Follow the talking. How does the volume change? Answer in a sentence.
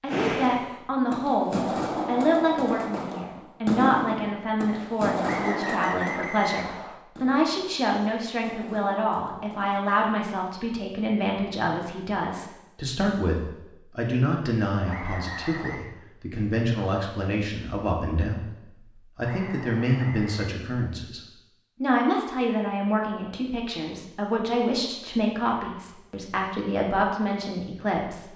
The loudness of the talking stays about the same.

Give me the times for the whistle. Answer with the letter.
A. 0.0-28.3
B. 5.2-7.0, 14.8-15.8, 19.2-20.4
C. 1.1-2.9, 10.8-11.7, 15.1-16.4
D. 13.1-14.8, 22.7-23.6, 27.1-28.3
B.